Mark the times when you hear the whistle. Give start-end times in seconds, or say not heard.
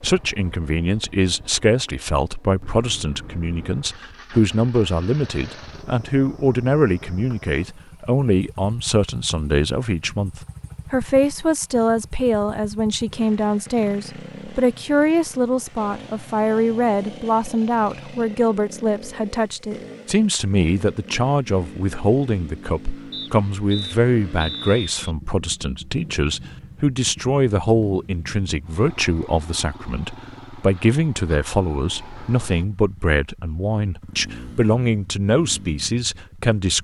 23.1-25.1.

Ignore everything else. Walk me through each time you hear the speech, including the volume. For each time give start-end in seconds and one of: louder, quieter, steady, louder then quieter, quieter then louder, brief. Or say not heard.
0.0-36.7 steady.